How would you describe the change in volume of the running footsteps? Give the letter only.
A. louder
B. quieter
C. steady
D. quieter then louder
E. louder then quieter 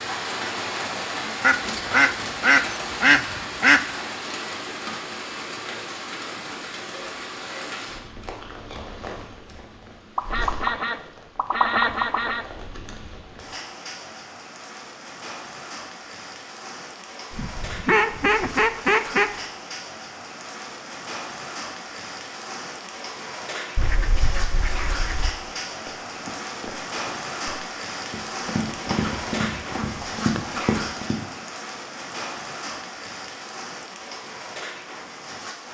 D.